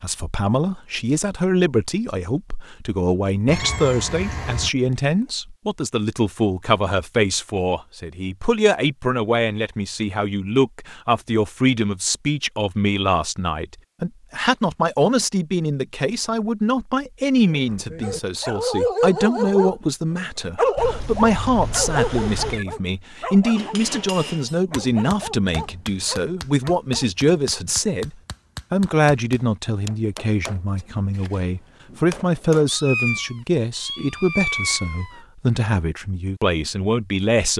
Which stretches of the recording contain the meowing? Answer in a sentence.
The meowing can be heard from 3.5 to 4.7 s, from 20.8 to 22.6 s and from 32.6 to 35.2 s.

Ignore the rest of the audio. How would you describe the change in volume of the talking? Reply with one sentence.
The volume of the talking stays about the same.